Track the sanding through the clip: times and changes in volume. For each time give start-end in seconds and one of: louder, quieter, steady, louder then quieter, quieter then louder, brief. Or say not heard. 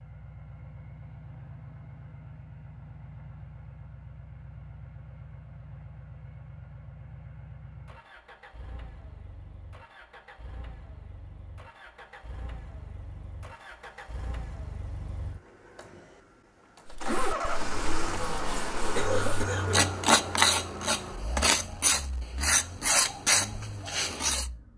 16.9-24.5 louder.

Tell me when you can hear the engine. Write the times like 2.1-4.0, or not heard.
0.0-24.7.